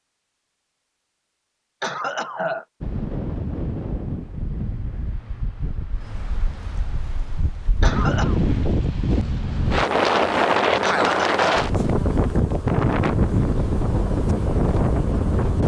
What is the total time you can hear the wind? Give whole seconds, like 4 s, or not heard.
13 s.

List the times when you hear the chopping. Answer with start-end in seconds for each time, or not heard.
not heard.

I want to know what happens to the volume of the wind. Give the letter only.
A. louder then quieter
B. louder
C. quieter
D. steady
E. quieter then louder
B.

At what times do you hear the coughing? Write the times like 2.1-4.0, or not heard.
1.8-2.6, 7.8-8.4, 10.8-11.7.